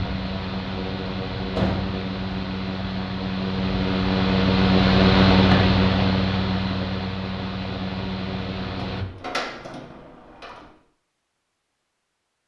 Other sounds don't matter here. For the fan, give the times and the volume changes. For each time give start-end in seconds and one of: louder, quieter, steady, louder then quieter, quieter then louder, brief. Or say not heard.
0.0-9.1 louder then quieter.